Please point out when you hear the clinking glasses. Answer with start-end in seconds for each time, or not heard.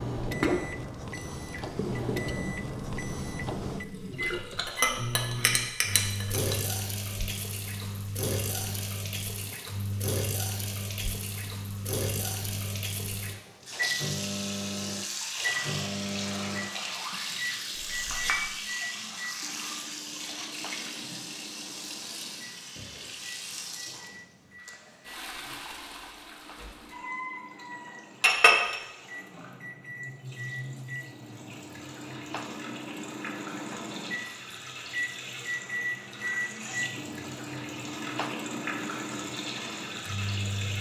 4.7-6.5, 17.9-18.5, 28.2-28.8.